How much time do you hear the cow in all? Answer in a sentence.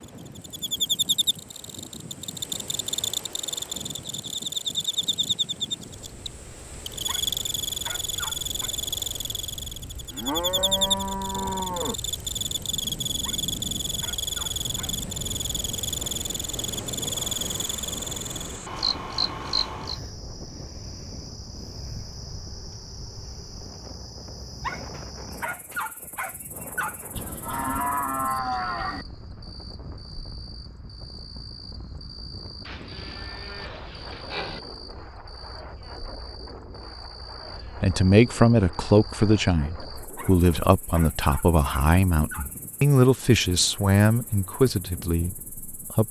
You can hear the cow for 6 seconds altogether.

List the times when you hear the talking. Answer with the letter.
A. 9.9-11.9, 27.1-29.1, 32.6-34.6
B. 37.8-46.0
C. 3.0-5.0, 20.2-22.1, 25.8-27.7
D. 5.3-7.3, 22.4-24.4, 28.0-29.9
B.